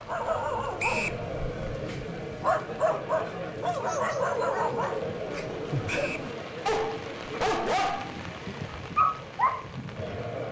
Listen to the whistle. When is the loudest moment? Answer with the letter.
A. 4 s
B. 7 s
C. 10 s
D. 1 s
D.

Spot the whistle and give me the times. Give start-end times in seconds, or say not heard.
0.8-1.2, 5.8-6.3.